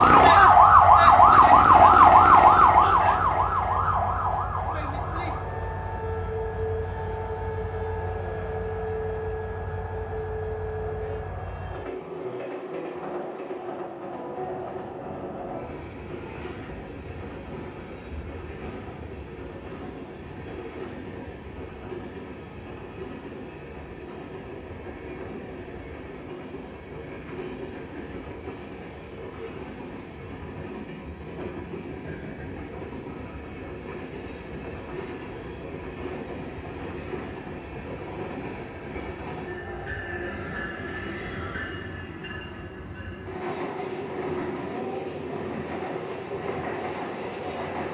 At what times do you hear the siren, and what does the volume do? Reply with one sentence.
You can hear the siren from 0.0 to 11.9 s, getting quieter.